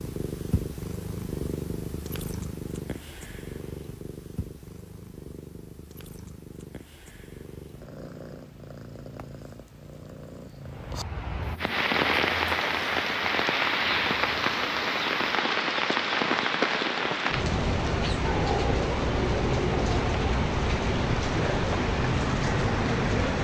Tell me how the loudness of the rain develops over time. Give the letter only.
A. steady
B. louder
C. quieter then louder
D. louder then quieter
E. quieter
A.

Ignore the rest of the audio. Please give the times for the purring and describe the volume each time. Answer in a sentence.
The purring can be heard from 0.0 to 15.6 s, getting quieter.